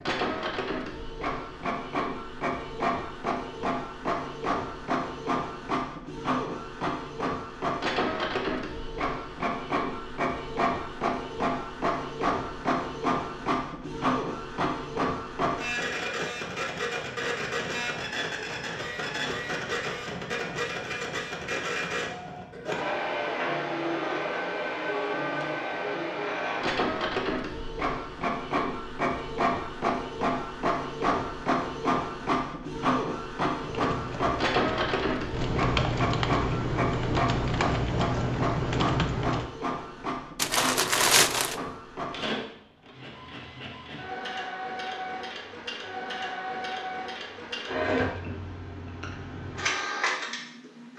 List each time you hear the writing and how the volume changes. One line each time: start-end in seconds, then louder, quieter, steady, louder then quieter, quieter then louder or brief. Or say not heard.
not heard.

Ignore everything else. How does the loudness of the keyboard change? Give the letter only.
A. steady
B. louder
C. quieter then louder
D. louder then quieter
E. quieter
B.